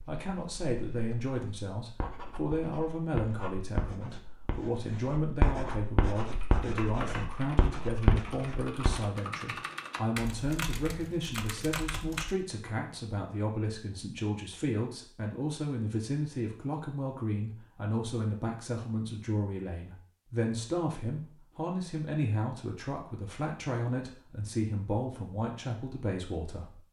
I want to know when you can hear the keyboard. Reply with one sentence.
You can hear the keyboard from 6.2 to 12.4 s.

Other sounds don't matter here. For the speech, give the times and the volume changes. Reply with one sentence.
You can hear the speech from 0.1 to 26.8 s, at a steady volume.